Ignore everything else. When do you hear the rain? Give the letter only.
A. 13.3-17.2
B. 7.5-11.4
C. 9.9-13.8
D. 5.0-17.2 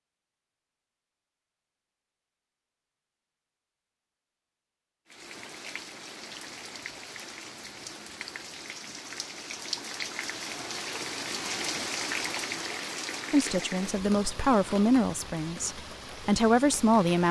D.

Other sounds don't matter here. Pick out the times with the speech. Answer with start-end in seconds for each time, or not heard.
13.3-17.2.